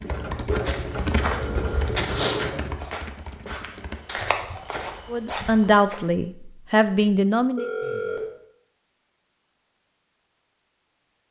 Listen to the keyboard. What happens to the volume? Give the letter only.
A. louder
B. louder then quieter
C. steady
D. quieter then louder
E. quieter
E.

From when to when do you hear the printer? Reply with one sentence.
The printer can be heard from 0.0 to 2.8 s.